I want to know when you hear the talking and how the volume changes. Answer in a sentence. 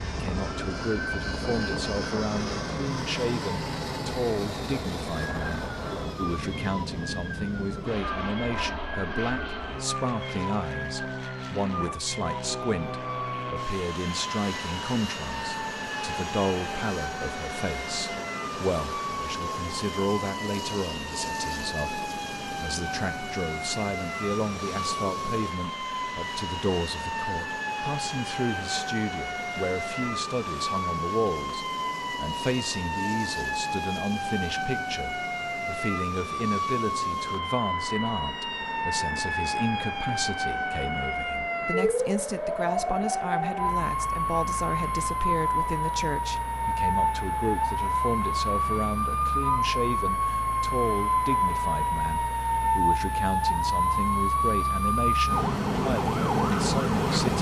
You can hear the talking from 0.1 to 57.3 s, at a steady volume.